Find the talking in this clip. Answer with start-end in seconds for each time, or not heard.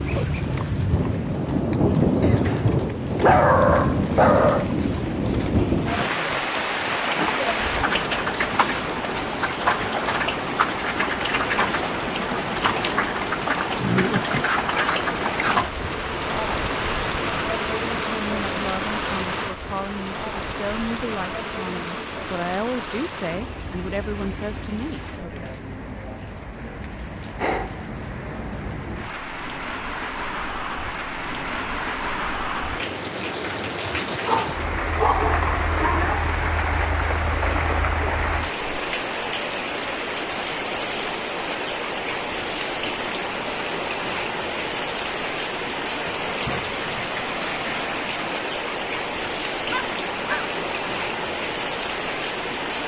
18.1-25.6.